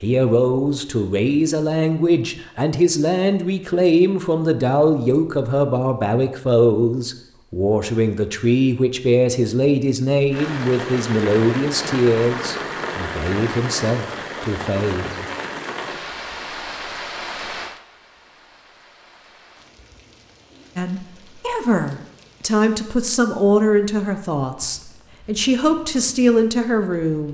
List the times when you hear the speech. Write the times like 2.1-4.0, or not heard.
0.0-15.2, 20.8-27.2.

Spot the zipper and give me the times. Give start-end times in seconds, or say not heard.
not heard.